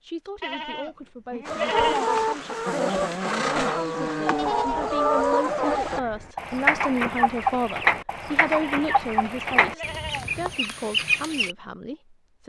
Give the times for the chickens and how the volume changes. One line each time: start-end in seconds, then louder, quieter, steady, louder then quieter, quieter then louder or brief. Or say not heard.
1.4-11.6 steady.